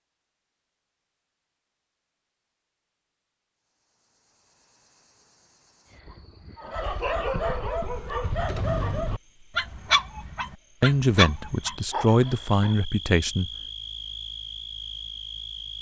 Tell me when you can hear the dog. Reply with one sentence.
You can hear the dog from 6.5 to 12.8 s.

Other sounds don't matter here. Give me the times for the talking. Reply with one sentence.
The talking can be heard from 10.8 to 13.5 s.